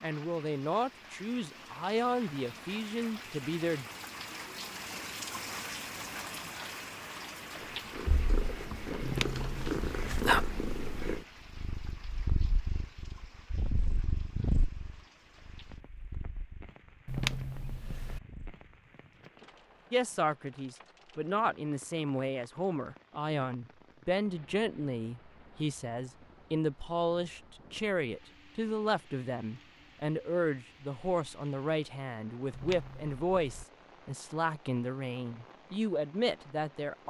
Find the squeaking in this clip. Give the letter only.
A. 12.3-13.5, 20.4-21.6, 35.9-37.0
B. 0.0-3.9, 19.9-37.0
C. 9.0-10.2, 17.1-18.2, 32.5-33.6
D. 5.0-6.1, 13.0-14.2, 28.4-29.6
C.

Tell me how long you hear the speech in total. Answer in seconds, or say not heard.
21 s.